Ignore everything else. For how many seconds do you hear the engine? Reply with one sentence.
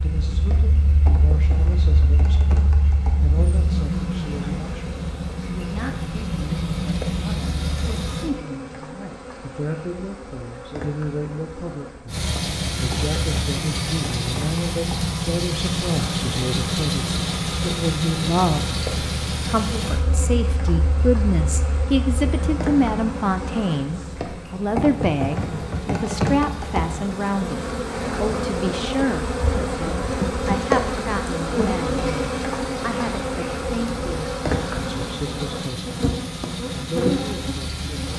You can hear the engine for 34 seconds altogether.